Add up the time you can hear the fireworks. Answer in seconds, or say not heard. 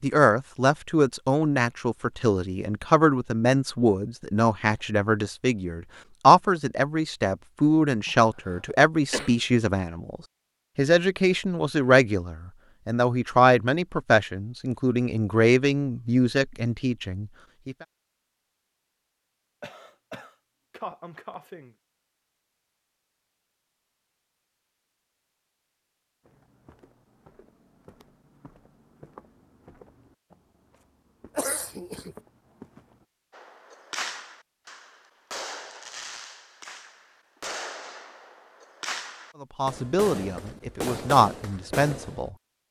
9 s.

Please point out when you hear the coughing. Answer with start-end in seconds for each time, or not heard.
8.1-9.3, 19.6-21.8, 31.4-32.1.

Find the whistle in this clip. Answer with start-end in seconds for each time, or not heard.
not heard.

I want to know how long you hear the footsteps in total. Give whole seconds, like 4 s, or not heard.
7 s.